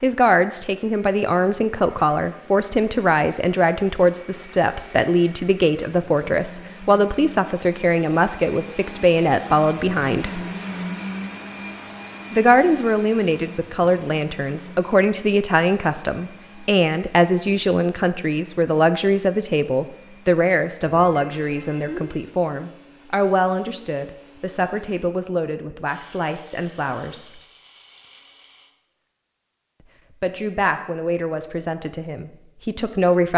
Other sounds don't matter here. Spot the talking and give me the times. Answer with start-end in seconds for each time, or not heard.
0.0-10.4, 12.3-27.4, 30.2-33.3.